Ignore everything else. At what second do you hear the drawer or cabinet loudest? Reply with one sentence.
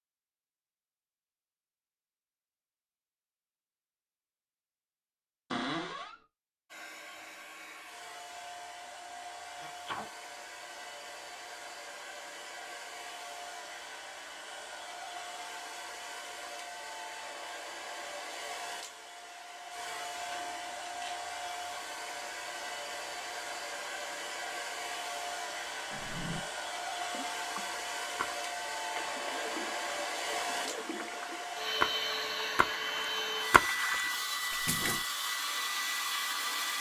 The volume of the drawer or cabinet peaks at 6 seconds.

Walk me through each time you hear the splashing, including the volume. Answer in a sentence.
You can hear the splashing from 27.1 to 35.0 s, getting louder.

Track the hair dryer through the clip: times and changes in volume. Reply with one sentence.
The hair dryer can be heard from 6.7 to 36.7 s, getting louder.